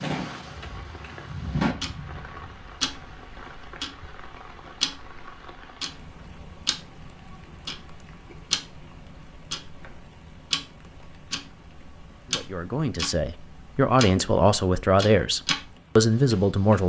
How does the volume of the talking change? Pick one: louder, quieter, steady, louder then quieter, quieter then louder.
louder.